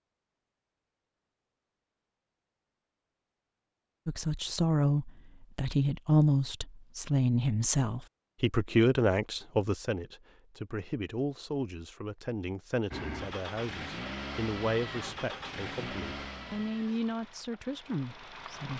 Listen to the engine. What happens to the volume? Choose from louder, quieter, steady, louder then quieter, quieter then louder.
quieter.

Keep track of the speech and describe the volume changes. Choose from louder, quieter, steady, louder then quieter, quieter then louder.
quieter.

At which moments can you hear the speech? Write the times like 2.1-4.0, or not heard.
4.0-18.7.